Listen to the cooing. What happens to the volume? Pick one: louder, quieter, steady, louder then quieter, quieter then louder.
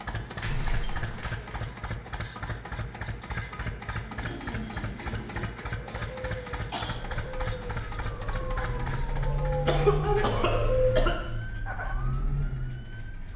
louder.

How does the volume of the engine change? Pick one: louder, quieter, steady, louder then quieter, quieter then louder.
quieter.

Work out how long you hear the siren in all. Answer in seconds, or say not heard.
6 s.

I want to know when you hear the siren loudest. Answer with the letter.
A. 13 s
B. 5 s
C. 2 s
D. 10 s
D.